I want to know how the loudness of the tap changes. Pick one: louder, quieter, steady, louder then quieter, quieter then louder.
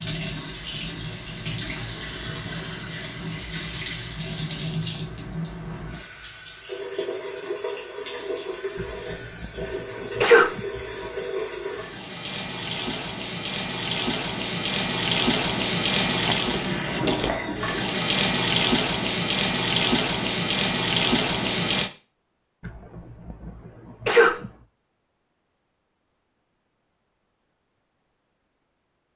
louder.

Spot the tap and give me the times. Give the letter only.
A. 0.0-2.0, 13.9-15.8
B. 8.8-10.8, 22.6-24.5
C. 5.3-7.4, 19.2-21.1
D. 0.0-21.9
D.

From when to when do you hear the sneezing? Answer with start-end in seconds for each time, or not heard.
8.8-10.8, 22.6-24.5.